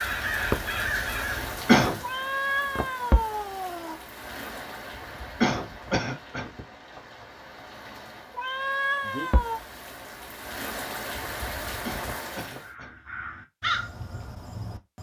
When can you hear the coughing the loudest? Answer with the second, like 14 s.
2 s.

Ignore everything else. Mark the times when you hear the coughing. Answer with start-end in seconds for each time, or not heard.
1.4-2.0, 5.4-6.5, 11.8-12.9.